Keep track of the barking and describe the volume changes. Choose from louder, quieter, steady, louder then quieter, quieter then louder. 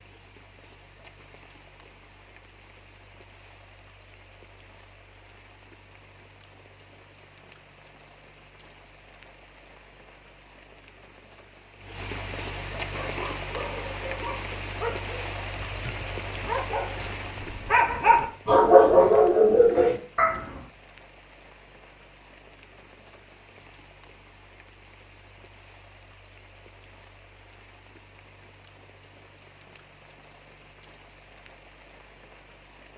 louder.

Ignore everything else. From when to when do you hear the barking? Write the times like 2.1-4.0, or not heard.
12.9-20.4.